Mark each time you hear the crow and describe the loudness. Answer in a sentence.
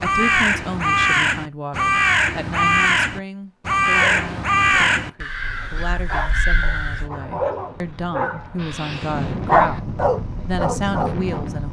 You can hear the crow from 0.0 to 7.1 s, getting quieter.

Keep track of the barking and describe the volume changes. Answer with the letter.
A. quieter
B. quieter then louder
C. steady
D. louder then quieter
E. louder
E.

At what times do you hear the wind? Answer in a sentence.
You can hear the wind from 5.3 to 11.6 s.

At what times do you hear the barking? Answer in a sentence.
The barking can be heard from 3.9 to 11.4 s.